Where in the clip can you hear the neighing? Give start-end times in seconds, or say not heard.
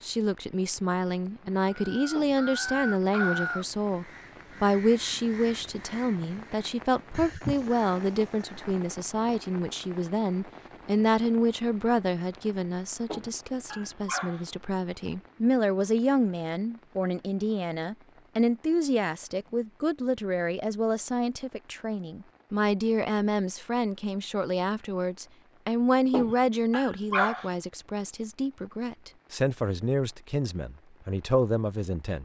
not heard.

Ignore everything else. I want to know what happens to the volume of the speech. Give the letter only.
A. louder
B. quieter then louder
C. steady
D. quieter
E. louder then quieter
C.